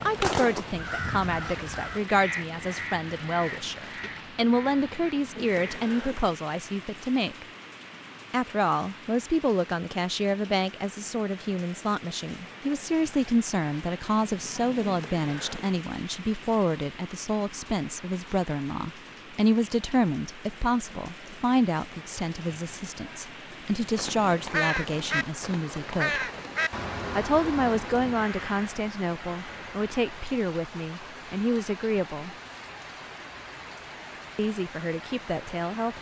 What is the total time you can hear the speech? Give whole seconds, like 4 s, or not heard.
32 s.